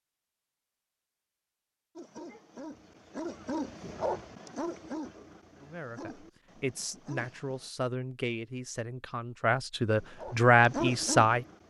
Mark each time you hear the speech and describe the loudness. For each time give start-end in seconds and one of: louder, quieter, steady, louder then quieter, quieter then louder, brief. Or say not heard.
5.6-11.4 louder.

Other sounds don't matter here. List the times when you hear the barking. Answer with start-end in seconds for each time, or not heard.
1.9-7.7, 9.8-11.6.